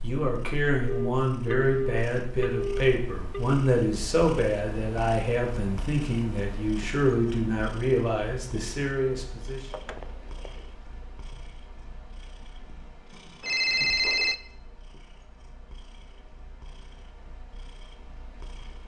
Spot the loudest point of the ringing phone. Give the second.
14 s.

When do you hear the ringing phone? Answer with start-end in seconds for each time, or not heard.
0.8-3.5, 9.7-10.7, 13.4-14.3.